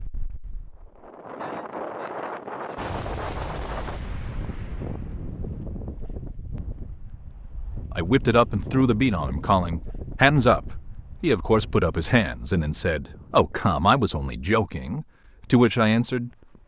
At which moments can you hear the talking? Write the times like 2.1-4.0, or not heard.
8.0-16.3.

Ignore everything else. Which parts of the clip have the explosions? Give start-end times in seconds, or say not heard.
2.8-6.2.